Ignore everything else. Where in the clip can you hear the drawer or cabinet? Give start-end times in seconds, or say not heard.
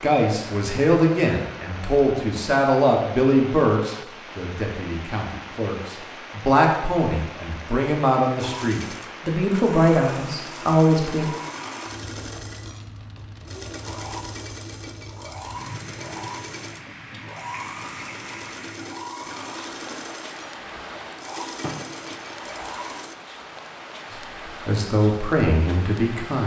20.6-22.2.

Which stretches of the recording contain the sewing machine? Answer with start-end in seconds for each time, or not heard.
8.3-23.1.